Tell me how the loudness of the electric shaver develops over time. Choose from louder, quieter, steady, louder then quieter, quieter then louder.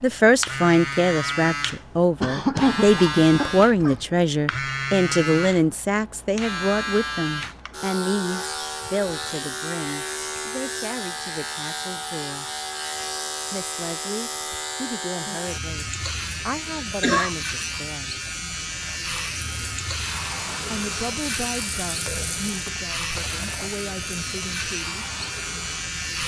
steady.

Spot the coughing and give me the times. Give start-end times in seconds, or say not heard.
2.2-4.0, 16.8-17.3.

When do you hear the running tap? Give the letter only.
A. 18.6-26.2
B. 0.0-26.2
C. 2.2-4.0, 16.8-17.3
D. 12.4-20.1
A.